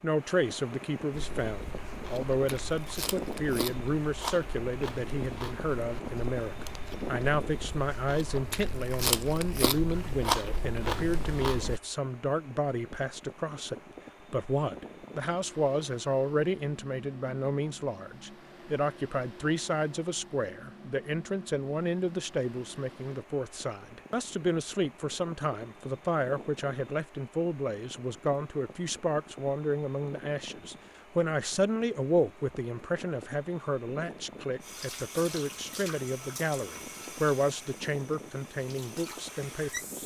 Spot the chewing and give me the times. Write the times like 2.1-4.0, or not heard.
1.1-11.8.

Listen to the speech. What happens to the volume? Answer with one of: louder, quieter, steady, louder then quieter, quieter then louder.
steady.